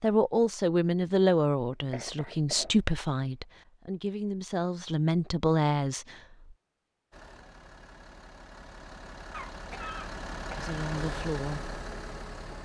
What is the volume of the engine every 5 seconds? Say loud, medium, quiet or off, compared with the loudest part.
off, medium, loud.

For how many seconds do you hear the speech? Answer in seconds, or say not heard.
7 s.